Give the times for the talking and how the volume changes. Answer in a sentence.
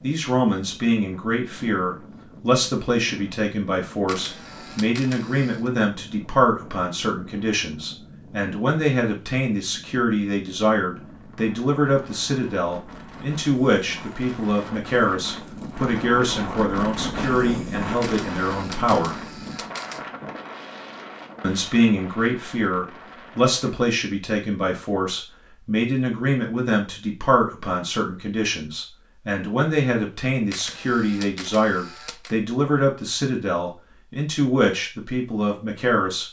You can hear the talking from 0.0 to 19.1 s, at a steady volume; and from 21.4 to 36.2 s, at a steady volume.